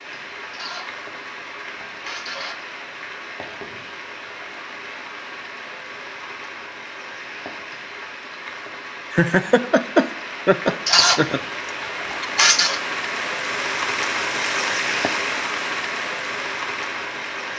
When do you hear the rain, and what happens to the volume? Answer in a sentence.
You can hear the rain from 0.0 to 17.5 s, getting louder.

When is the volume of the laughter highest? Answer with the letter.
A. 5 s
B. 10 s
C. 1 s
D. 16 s
B.